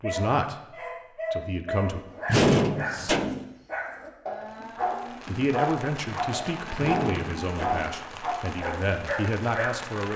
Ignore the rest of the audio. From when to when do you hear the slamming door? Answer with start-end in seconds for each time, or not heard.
2.2-3.5, 6.8-8.0.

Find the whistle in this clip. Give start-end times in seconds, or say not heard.
not heard.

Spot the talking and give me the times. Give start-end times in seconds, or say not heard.
0.0-0.6, 1.3-2.0, 5.2-10.1.